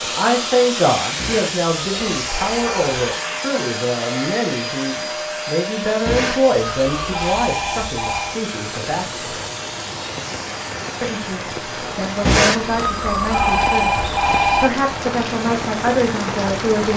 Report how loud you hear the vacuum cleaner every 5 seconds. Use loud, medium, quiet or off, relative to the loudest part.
loud, loud, medium, medium.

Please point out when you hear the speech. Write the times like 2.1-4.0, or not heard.
0.0-9.4, 11.0-13.9, 14.6-16.9.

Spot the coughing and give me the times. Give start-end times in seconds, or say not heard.
not heard.